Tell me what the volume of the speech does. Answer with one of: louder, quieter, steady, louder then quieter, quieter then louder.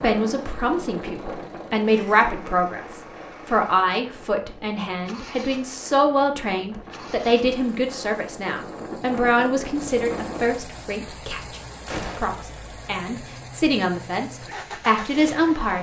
steady.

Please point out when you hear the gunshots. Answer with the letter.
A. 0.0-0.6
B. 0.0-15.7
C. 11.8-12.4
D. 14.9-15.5
C.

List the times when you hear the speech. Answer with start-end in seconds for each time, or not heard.
0.0-15.7.